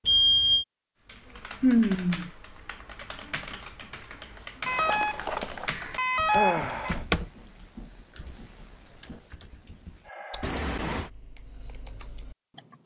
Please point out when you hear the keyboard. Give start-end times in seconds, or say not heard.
1.1-12.8.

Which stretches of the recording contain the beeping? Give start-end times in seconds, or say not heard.
0.1-0.7, 4.7-7.0, 10.4-11.1.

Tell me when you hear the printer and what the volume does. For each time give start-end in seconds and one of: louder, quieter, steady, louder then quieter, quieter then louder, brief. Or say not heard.
not heard.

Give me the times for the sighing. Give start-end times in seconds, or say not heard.
1.6-2.3, 6.3-7.0, 10.1-10.6.